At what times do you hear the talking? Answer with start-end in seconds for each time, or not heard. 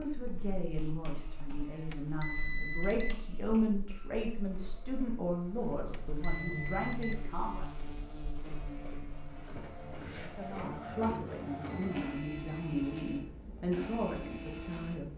0.0-7.7, 10.2-15.1.